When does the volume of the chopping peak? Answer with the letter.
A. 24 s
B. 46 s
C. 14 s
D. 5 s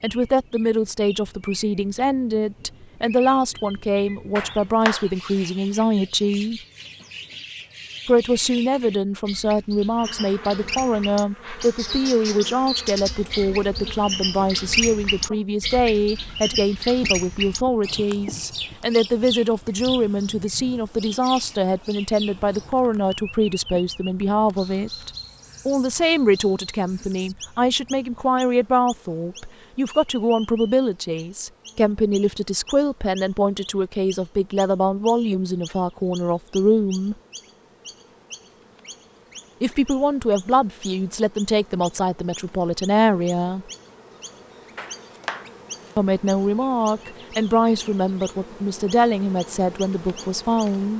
D.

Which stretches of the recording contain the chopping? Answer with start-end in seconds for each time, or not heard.
4.3-5.5, 44.8-46.0.